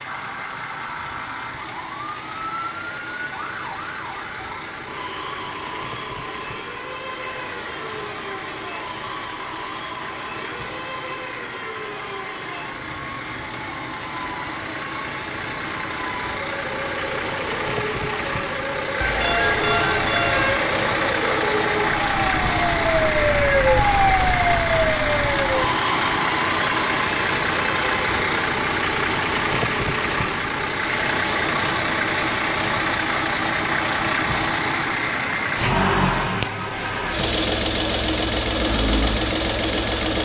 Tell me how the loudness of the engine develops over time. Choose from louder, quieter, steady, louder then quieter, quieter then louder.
louder.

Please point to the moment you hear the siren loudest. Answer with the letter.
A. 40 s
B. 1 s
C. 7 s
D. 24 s
D.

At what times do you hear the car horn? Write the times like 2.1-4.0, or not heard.
19.0-20.6.